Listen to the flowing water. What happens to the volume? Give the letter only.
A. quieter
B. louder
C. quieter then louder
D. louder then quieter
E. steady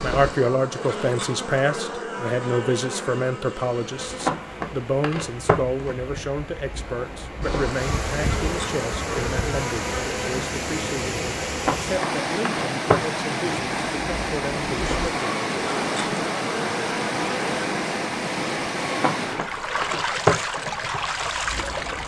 B.